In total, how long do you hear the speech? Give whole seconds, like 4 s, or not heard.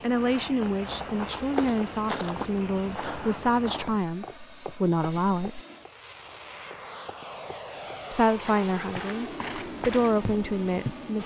9 s.